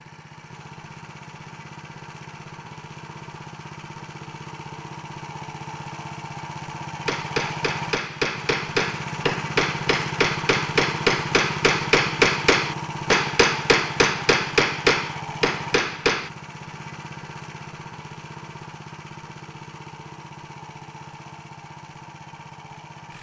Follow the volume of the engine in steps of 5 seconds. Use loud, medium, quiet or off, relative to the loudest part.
medium, loud, loud, medium, medium.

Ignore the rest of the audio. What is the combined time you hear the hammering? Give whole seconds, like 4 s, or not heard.
9 s.